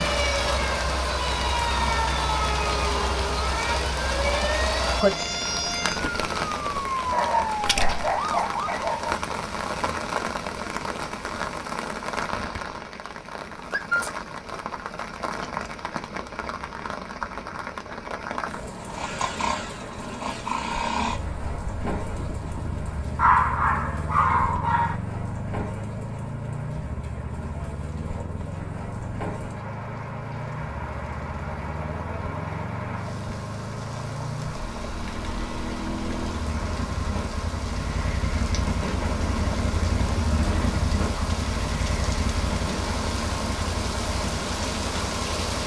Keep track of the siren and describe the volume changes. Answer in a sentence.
The loudness of the siren stays about the same.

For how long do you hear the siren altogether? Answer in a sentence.
The siren can be heard for 9 seconds in total.